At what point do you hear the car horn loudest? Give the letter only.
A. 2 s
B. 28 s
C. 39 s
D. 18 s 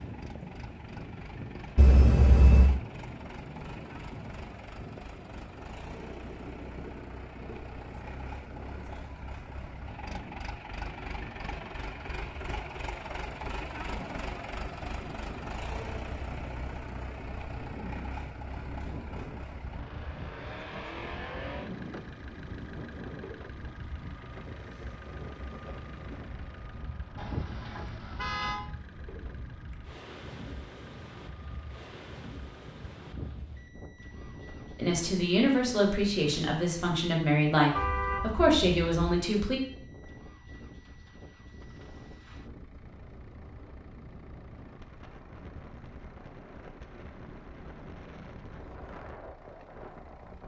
A.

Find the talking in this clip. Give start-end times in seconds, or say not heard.
34.8-39.6.